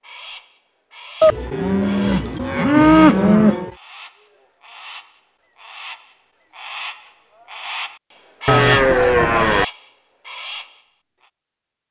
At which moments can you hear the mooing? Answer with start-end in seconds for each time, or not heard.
1.2-3.7, 8.4-9.7.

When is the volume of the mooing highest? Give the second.
3 s.